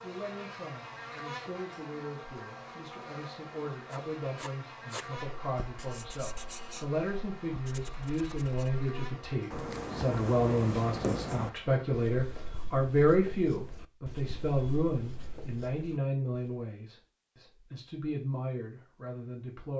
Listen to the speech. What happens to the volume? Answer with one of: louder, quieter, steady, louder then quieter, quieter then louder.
louder then quieter.